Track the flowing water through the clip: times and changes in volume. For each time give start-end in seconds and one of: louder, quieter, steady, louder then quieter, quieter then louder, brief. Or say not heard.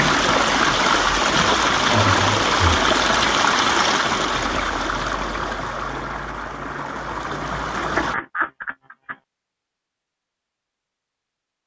0.0-8.2 quieter.